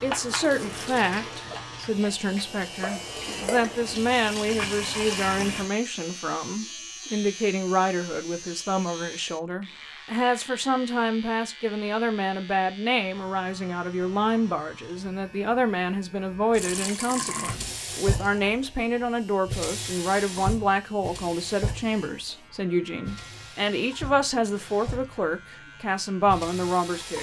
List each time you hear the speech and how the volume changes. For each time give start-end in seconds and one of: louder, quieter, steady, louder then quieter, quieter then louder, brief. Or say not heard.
0.0-27.1 steady.